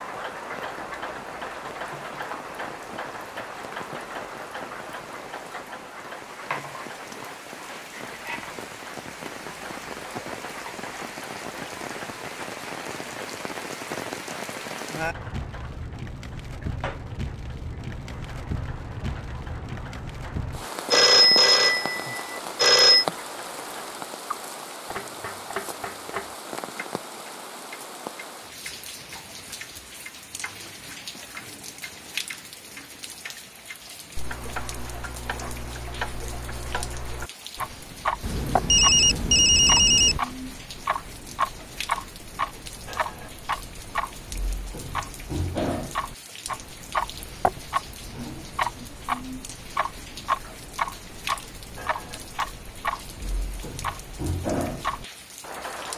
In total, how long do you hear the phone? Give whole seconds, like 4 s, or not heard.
4 s.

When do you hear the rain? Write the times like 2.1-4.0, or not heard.
0.0-55.9.